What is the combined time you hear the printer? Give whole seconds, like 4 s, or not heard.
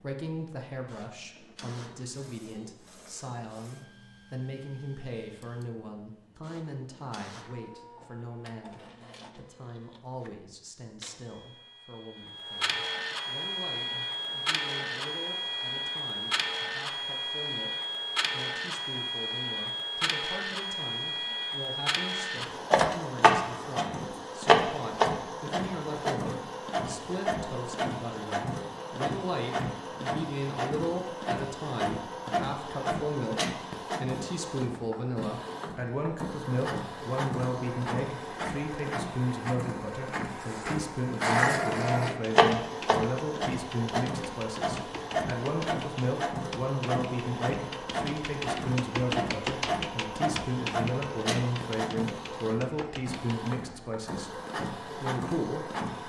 56 s.